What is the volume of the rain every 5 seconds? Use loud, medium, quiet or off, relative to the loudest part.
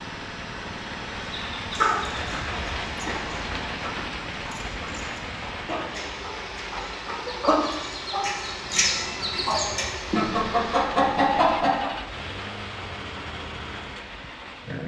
loud, loud, medium.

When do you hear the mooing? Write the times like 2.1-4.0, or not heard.
not heard.